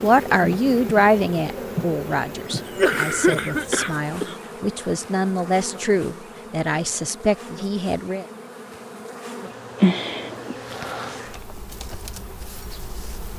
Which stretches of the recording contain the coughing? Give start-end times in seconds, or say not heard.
2.5-4.3, 9.8-10.6.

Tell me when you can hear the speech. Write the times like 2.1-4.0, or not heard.
0.0-8.2.